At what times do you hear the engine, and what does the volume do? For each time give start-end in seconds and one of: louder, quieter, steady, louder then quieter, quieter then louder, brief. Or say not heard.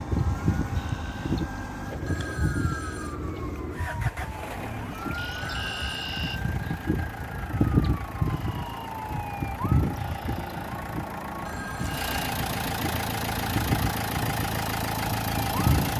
0.0-15.9 louder.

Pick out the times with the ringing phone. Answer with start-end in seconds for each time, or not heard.
2.0-3.1, 5.4-6.1, 11.4-12.1.